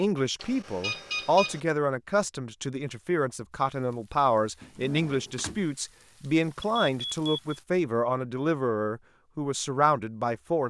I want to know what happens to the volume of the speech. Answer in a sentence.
The volume of the speech stays about the same.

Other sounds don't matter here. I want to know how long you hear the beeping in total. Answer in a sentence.
The beeping can be heard for 2 seconds in total.